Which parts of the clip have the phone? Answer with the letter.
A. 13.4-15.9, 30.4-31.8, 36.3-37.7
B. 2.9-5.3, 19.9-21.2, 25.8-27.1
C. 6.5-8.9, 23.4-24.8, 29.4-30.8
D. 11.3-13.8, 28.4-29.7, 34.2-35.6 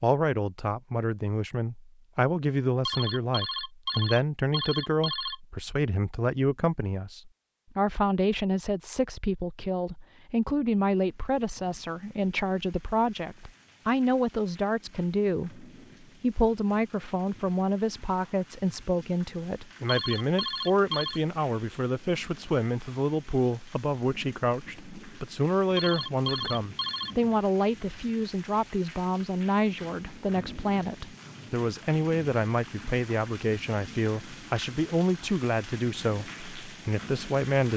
B.